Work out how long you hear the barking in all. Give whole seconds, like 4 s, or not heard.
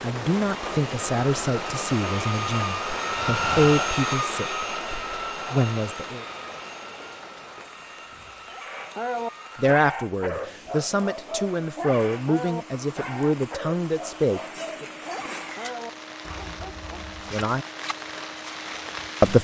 9 s.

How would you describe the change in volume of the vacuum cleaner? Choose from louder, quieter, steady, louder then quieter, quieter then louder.
quieter.